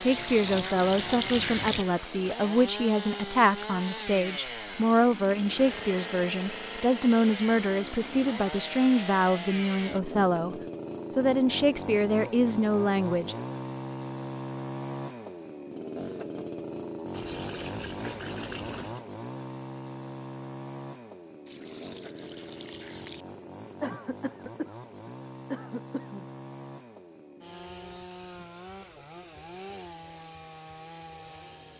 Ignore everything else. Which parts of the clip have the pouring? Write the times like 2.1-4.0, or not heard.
0.1-1.9, 17.1-19.1, 21.4-23.2.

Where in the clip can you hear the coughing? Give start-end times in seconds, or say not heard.
23.8-26.2.